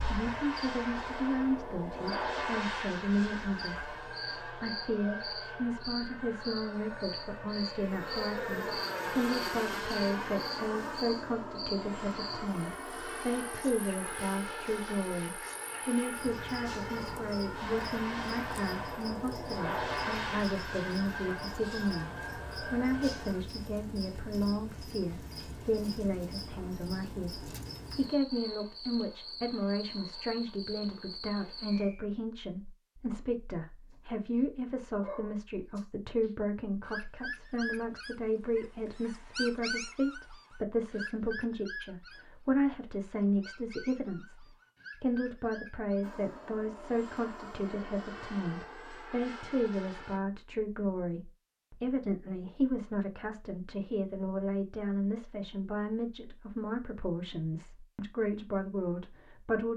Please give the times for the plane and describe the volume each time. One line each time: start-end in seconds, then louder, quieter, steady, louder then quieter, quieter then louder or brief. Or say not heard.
0.0-23.4 steady
46.0-50.2 steady.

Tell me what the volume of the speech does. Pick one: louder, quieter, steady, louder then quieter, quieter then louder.
steady.